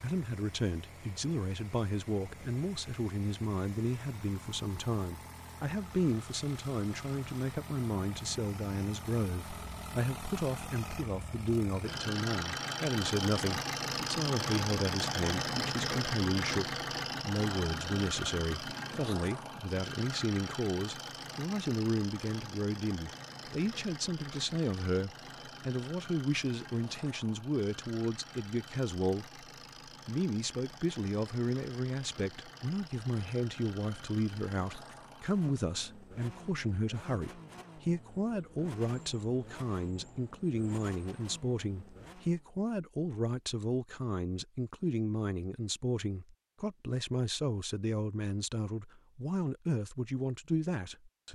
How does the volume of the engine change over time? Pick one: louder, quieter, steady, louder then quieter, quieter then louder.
louder then quieter.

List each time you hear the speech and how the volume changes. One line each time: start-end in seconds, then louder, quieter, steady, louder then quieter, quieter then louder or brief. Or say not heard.
0.0-29.4 steady
30.1-51.3 steady.